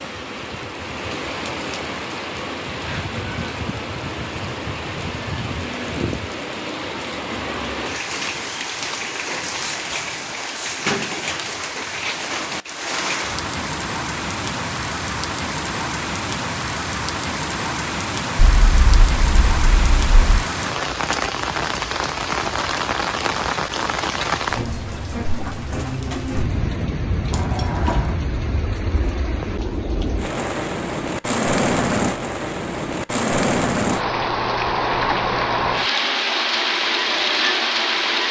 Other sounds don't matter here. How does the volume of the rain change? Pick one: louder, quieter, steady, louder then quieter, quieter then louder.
louder.